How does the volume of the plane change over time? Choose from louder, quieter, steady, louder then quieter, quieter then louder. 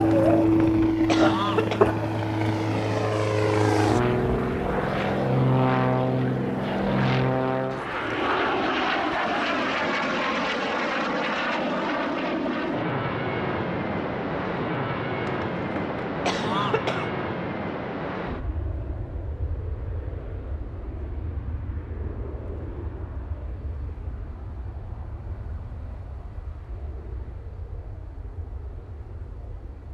quieter.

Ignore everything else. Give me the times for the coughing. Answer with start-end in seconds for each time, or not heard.
0.1-1.9, 15.2-17.1.